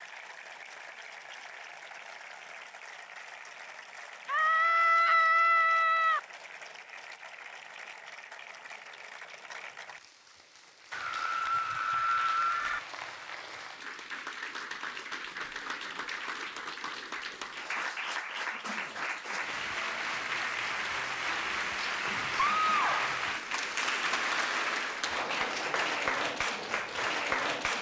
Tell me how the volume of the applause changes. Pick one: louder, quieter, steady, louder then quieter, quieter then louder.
louder.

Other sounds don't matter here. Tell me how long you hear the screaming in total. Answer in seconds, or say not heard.
5 s.